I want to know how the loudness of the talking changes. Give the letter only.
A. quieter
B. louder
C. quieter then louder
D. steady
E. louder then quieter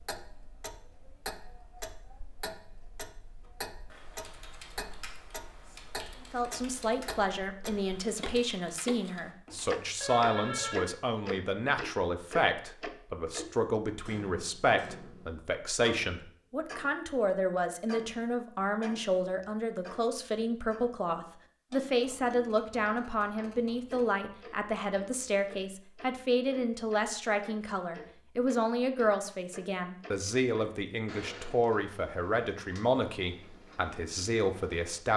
D.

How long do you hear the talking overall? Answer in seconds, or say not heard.
29 s.